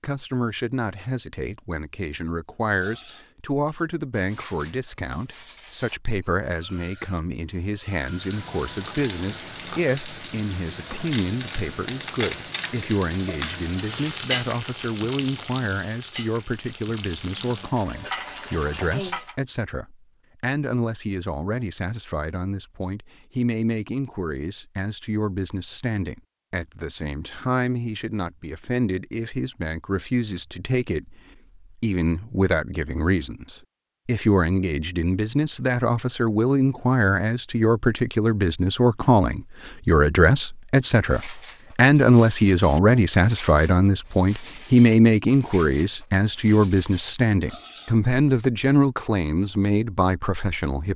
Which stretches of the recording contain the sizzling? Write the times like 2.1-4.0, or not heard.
8.0-19.4.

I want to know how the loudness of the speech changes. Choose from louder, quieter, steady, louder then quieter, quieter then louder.
louder.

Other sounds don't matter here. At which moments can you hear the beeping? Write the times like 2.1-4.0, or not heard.
not heard.